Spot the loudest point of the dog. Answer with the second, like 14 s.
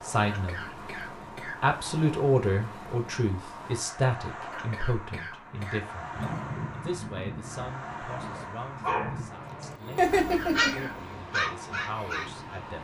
10 s.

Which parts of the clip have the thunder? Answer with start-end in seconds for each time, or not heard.
6.1-9.3.